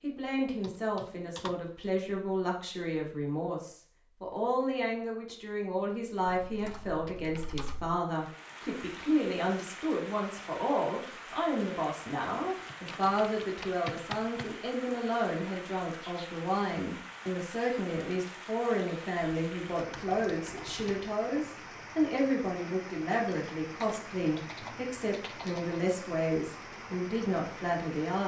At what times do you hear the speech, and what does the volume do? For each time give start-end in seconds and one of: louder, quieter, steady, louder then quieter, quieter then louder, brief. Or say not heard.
0.0-28.2 steady.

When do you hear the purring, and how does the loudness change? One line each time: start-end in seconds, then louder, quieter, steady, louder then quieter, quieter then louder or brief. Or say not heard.
not heard.